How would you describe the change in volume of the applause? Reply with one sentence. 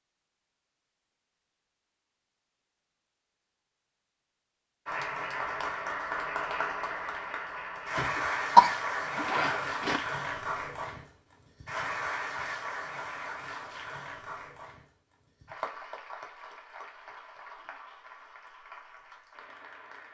The loudness of the applause goes down.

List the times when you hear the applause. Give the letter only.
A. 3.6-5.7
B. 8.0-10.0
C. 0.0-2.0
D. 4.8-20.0
D.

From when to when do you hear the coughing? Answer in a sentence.
The coughing can be heard from 8.0 to 10.0 s.